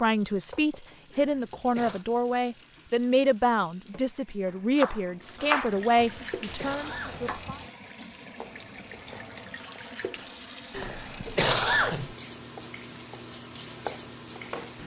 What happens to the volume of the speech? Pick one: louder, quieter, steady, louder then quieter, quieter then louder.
steady.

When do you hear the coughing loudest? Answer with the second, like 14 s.
12 s.